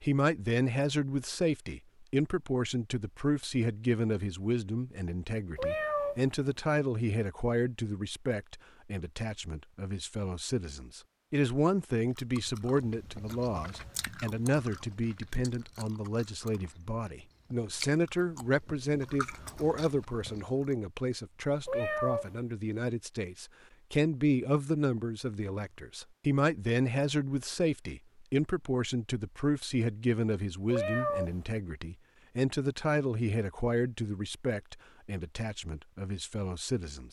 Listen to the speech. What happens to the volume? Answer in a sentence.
The loudness of the speech stays about the same.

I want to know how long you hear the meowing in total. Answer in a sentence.
You can hear the meowing for 2 seconds altogether.